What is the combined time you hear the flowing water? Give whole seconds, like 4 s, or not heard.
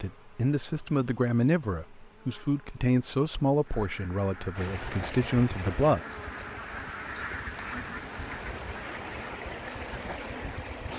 6 s.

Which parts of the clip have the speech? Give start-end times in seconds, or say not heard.
0.0-6.0.